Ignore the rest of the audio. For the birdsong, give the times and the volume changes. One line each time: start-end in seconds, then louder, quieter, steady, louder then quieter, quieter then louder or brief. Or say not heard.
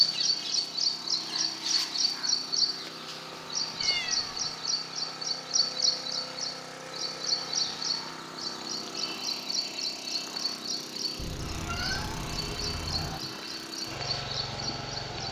0.0-15.2 quieter.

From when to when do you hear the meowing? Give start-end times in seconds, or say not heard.
3.8-4.4, 11.2-13.2.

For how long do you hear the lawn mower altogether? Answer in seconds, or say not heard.
15 s.